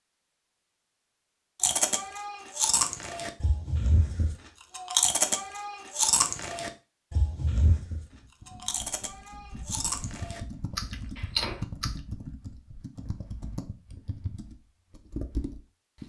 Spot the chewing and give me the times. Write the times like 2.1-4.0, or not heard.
1.6-12.0.